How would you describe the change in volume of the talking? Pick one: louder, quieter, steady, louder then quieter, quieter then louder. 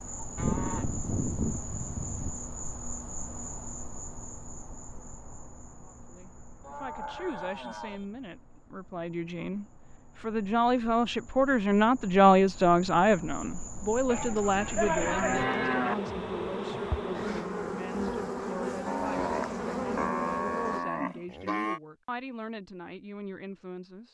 louder then quieter.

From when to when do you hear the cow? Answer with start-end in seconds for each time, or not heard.
0.3-2.3, 6.6-8.1, 14.1-15.9, 18.9-21.8.